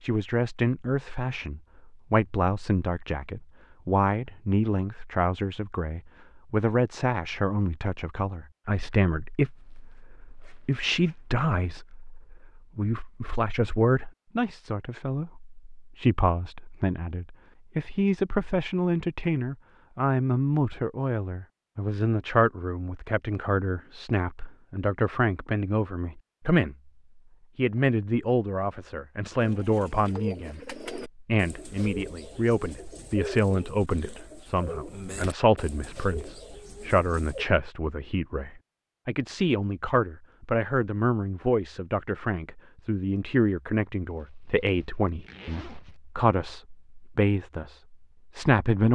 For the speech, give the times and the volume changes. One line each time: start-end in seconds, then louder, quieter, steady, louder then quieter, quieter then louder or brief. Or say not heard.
0.0-26.9 steady
27.6-48.8 steady.